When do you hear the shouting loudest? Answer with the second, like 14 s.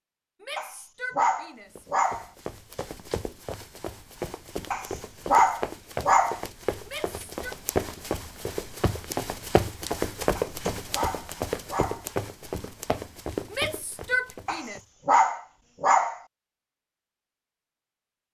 14 s.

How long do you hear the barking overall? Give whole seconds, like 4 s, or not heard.
7 s.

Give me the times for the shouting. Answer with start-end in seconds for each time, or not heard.
0.4-1.9, 6.8-7.5, 13.5-14.8.